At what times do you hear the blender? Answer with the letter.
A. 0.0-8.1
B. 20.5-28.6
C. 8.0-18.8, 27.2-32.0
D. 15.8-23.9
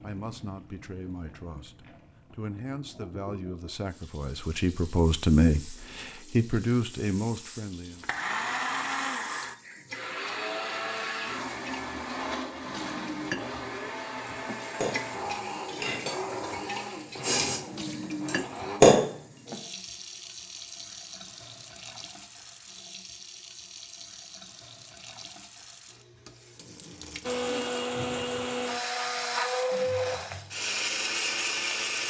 C.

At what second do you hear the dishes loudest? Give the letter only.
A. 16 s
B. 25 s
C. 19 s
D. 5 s
C.